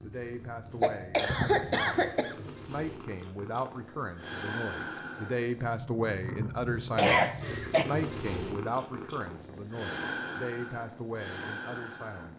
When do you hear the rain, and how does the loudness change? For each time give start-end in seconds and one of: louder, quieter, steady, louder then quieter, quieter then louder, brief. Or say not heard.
not heard.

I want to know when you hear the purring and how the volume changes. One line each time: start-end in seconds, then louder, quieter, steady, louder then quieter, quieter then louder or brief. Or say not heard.
0.0-12.3 louder.